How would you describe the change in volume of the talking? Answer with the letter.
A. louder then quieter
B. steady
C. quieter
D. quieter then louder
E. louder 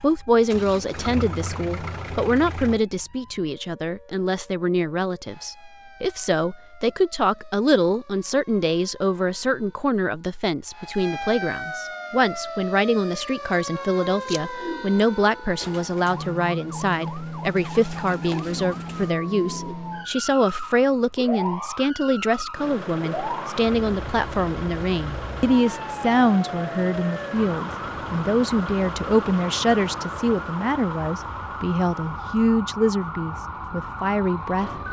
B.